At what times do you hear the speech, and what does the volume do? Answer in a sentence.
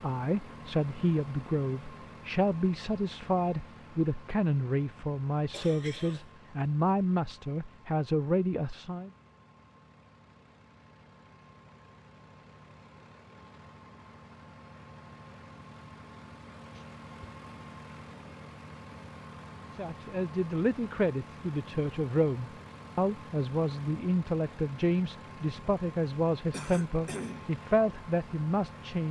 You can hear the speech from 0.0 to 9.1 s, at a steady volume; and from 19.8 to 29.0 s, at a steady volume.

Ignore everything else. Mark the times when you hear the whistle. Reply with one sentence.
You can't hear the whistle here.